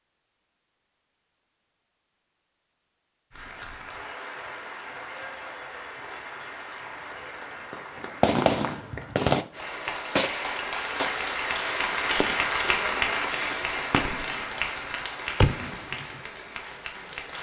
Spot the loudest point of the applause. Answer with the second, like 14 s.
13 s.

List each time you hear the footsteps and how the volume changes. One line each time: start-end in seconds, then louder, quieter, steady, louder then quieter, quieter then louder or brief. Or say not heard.
not heard.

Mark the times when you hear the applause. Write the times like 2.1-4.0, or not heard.
3.3-17.3.